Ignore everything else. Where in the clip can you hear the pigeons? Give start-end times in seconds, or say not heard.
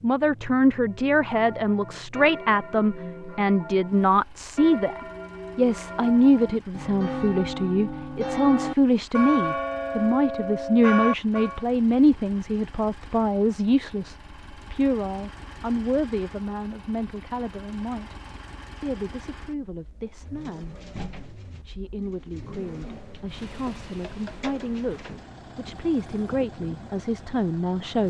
20.0-25.4.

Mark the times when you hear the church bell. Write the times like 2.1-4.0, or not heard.
0.8-11.7.